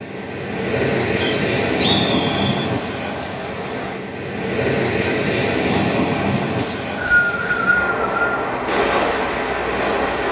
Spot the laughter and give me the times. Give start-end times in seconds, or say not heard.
not heard.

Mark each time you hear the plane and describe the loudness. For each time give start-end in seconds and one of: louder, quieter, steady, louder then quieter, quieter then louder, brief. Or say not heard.
not heard.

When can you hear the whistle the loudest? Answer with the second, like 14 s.
7 s.